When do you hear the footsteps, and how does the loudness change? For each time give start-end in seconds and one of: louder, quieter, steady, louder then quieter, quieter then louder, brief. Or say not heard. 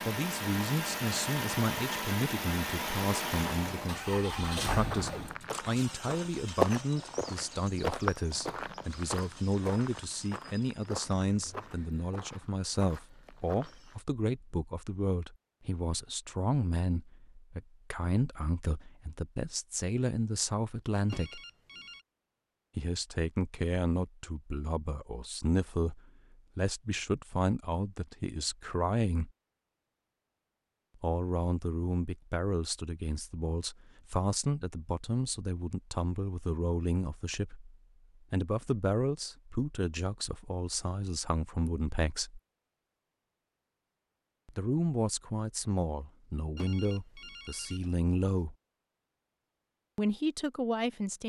4.8-14.0 quieter.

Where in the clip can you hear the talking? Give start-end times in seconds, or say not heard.
0.1-21.4, 22.8-29.3, 31.0-42.4, 44.5-48.5, 50.0-51.2.